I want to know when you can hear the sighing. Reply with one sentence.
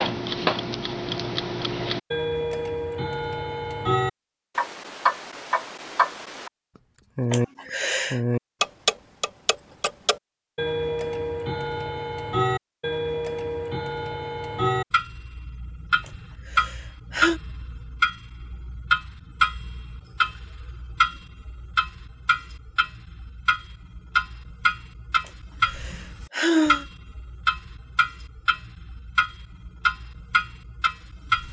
You can hear the sighing from 7.3 to 8.2 s, from 16.1 to 17.4 s and from 25.2 to 26.9 s.